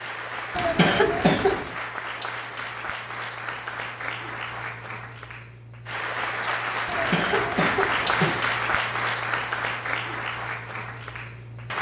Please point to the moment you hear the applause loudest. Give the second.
8 s.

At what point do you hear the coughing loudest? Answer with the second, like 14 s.
1 s.